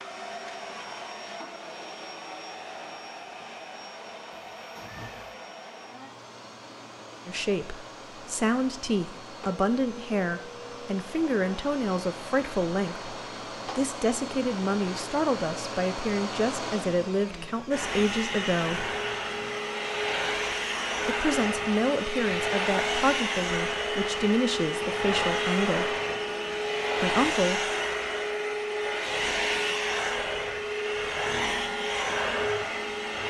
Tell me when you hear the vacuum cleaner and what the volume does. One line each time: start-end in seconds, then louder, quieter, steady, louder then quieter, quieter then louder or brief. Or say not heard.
0.0-33.2 louder.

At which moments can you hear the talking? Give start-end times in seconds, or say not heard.
7.2-18.9, 21.1-26.0, 27.0-27.7.